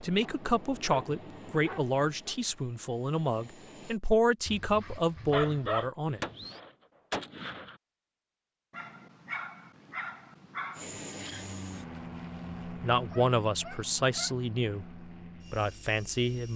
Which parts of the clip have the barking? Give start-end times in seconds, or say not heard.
0.2-2.4, 4.5-6.6, 8.7-10.8, 13.1-14.3.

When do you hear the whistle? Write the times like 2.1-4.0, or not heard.
not heard.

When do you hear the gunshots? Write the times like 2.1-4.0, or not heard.
6.2-7.8.